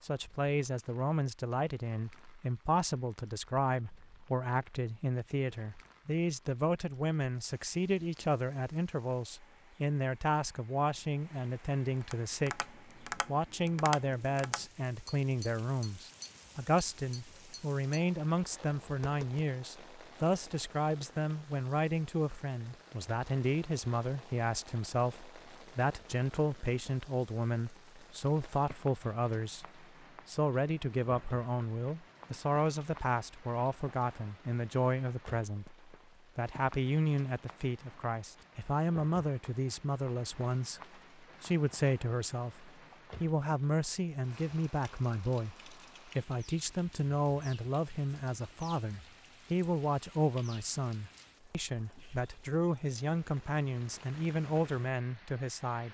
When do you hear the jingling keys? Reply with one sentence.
The jingling keys can't be heard in this clip.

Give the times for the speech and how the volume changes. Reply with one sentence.
You can hear the speech from 0.0 to 55.8 s, at a steady volume.